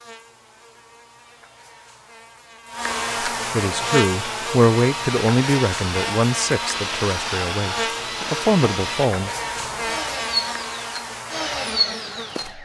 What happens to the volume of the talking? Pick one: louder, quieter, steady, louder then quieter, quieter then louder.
quieter then louder.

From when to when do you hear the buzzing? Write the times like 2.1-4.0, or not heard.
0.0-12.6.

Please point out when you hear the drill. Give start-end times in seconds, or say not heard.
4.0-12.6.